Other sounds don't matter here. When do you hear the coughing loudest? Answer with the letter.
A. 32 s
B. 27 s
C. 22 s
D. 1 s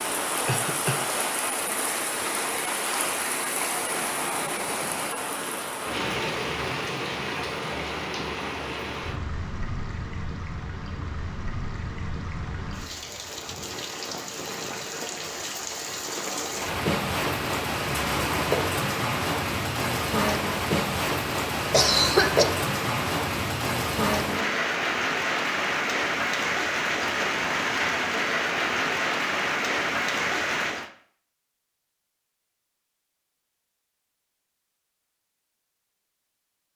C.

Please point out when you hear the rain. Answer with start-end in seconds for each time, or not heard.
0.0-30.9.